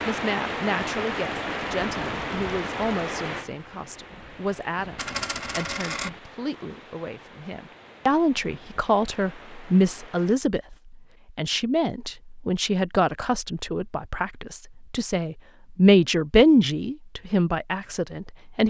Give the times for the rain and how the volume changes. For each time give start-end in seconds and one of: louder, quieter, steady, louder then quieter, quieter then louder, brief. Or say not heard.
0.0-10.3 quieter.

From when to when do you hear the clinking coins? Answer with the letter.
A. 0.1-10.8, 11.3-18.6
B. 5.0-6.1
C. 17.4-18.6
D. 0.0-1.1
B.